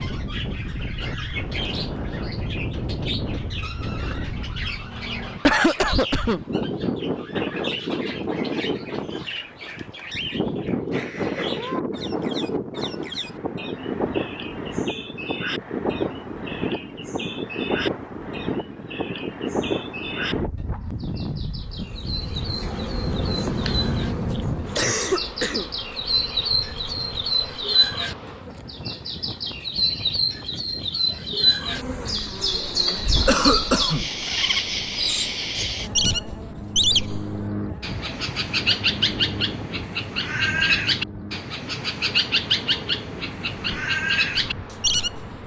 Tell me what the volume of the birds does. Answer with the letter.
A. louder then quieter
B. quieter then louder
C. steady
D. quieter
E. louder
E.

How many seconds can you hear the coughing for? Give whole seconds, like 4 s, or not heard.
3 s.